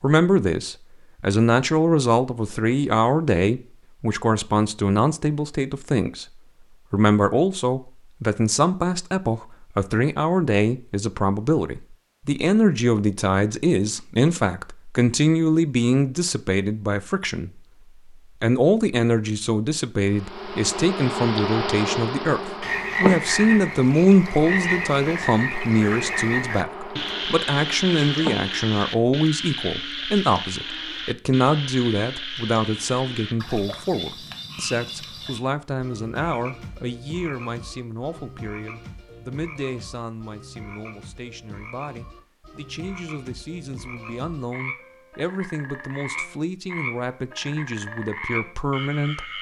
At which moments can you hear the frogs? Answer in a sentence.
The frogs can be heard from 22.6 to 49.3 s.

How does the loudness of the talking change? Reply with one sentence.
The volume of the talking goes down.